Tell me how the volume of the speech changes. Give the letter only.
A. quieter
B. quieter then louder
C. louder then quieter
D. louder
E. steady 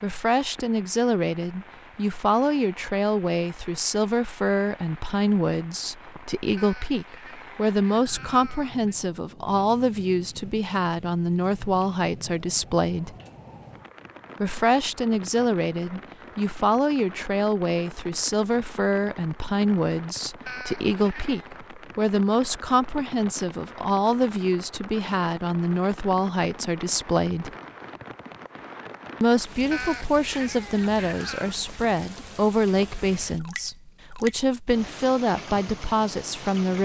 E.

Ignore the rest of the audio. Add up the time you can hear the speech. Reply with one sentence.
You can hear the speech for 34 seconds altogether.